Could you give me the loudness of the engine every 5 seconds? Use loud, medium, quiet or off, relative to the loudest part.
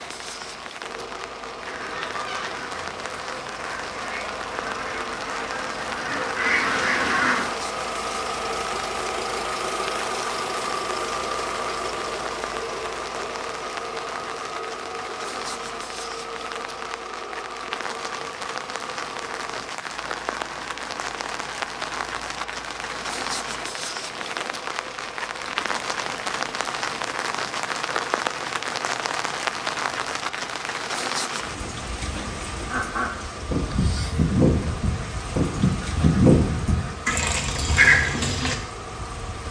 medium, loud, loud, medium, medium, medium, medium, medium.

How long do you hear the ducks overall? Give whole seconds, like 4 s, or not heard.
12 s.